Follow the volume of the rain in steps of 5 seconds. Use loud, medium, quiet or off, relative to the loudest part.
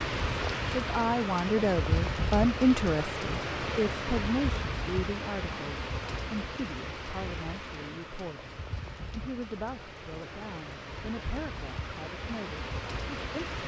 loud, medium, medium.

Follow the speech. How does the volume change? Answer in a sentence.
The volume of the speech goes down.